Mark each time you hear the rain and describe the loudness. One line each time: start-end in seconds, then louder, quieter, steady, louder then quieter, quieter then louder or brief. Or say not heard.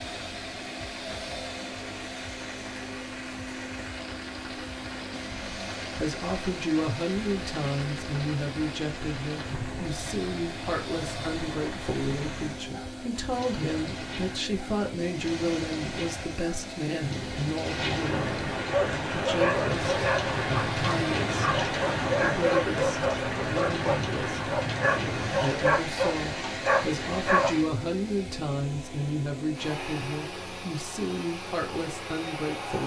0.0-27.7 louder.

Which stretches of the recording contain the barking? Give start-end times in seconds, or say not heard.
18.6-27.6.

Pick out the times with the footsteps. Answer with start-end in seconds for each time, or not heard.
not heard.